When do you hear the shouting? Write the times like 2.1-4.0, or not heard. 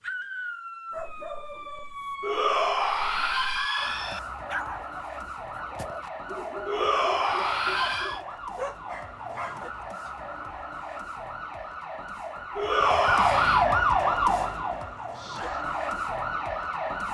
2.2-4.2, 6.7-8.2, 12.6-13.7.